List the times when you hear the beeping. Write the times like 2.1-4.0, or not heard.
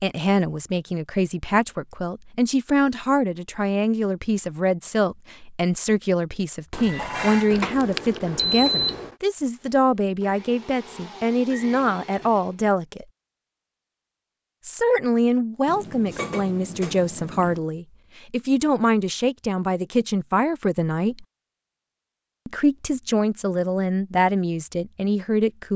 7.5-9.2.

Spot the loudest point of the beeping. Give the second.
9 s.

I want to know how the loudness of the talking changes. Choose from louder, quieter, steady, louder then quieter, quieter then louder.
steady.